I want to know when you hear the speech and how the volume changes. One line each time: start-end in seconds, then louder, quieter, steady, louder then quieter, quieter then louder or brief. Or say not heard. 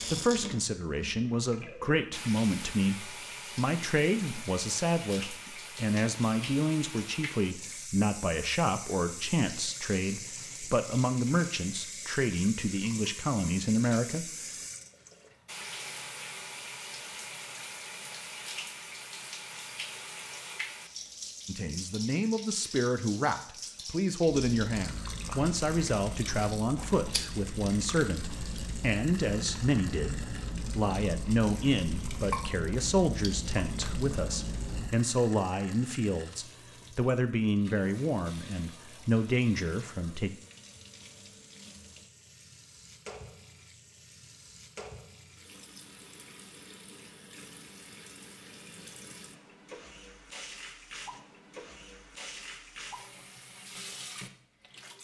0.1-14.3 steady
21.4-40.3 steady.